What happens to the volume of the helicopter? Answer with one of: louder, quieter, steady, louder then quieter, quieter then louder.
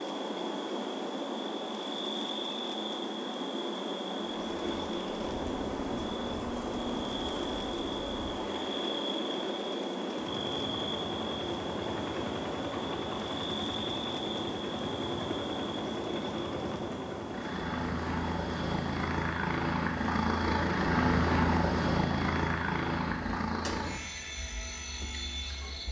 louder.